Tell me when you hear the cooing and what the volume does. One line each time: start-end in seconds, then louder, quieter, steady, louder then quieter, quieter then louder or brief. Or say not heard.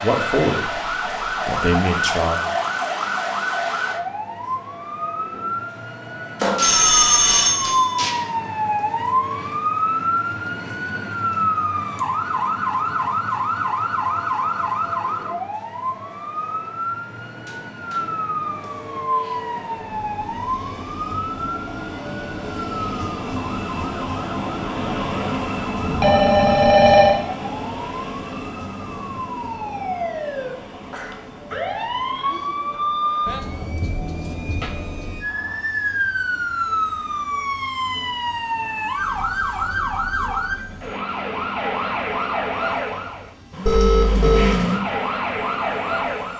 not heard.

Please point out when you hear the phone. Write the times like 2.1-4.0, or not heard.
6.4-8.2, 25.8-27.2, 43.6-44.6.